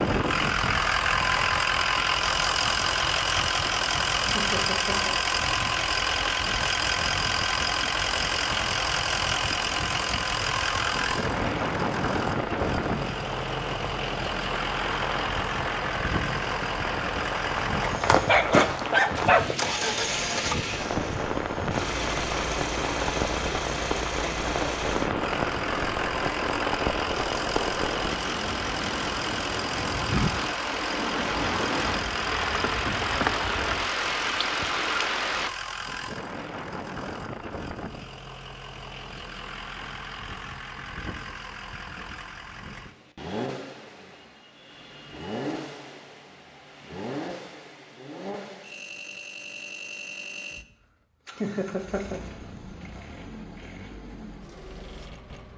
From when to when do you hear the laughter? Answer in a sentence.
You can hear the laughter from 4.3 to 5.2 s and from 51.4 to 52.2 s.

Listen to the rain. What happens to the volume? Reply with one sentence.
The volume of the rain goes up.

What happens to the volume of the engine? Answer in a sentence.
The loudness of the engine goes down.